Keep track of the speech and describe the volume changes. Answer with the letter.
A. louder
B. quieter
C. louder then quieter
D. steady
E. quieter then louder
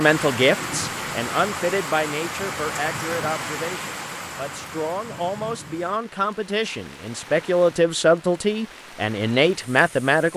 E.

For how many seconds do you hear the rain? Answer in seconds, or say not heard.
10 s.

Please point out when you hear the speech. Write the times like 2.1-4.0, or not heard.
0.0-10.3.